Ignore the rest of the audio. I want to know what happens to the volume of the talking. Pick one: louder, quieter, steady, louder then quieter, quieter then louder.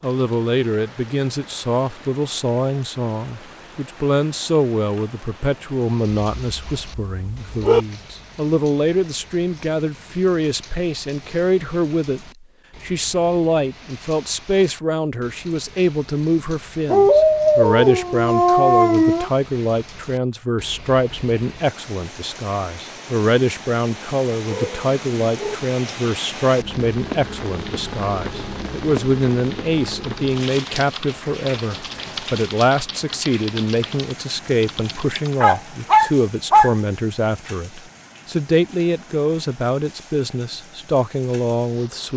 steady.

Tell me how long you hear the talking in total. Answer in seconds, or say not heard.
42 s.